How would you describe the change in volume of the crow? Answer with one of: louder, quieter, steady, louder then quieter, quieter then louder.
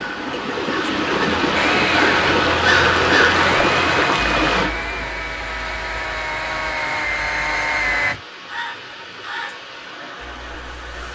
quieter.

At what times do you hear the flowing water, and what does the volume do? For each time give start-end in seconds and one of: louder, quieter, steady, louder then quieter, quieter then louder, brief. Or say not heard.
0.0-11.1 quieter.